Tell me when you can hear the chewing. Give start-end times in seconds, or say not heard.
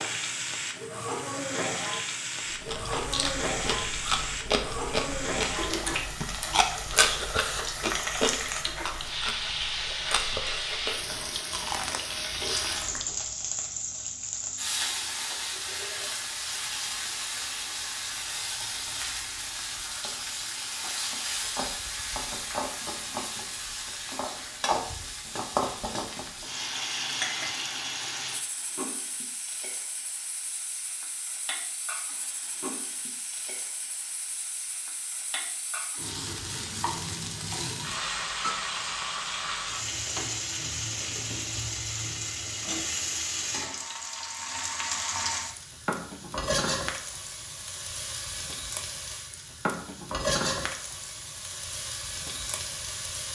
2.5-13.3.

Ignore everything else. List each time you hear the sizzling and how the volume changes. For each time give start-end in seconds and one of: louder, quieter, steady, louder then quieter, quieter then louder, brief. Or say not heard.
0.0-53.2 steady.